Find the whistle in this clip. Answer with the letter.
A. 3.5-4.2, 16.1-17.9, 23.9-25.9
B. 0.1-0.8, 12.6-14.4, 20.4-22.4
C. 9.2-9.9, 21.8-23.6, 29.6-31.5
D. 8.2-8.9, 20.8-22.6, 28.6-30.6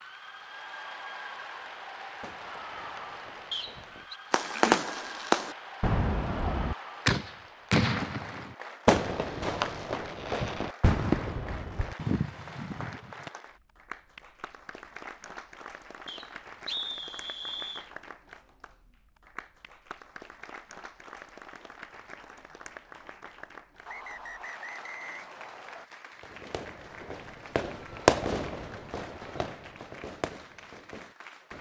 A.